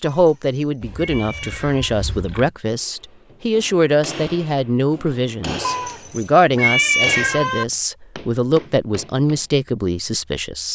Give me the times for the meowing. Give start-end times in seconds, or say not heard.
0.0-1.9, 5.6-7.7.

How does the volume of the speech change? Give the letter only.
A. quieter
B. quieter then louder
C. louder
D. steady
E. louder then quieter
D.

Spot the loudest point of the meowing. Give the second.
7 s.